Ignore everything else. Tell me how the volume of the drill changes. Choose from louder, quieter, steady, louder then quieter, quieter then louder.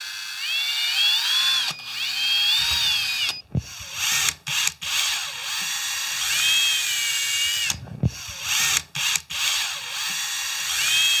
steady.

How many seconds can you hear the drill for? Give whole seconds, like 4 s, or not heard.
11 s.